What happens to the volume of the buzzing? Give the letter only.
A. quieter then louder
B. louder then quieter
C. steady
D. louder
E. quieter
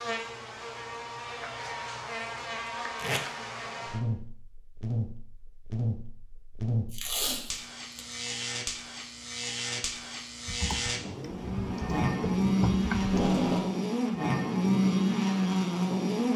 D.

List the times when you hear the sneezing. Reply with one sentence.
The sneezing can't be heard in this clip.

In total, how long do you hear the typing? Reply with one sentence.
You can hear the typing for 3 seconds altogether.